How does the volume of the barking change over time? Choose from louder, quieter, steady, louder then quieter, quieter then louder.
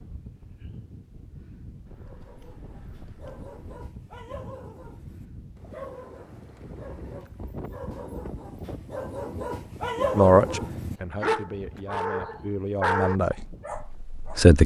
louder.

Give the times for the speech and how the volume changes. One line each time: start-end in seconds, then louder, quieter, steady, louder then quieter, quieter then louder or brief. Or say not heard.
10.2-14.6 louder then quieter.